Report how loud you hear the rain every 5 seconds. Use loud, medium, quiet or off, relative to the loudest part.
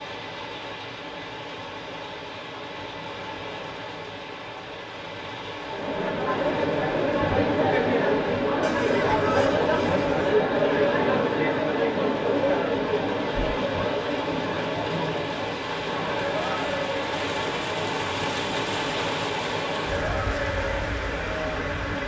medium, medium, medium, loud, loud.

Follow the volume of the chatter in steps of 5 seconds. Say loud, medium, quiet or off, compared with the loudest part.
off, loud, loud, medium, medium.